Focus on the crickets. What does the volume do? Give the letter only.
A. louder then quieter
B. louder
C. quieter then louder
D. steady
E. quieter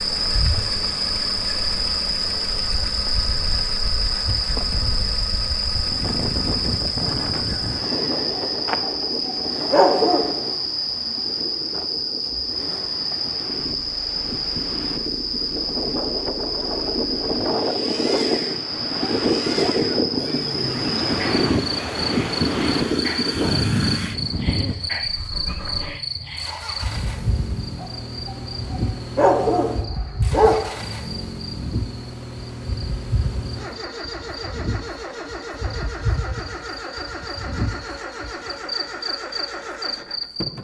E.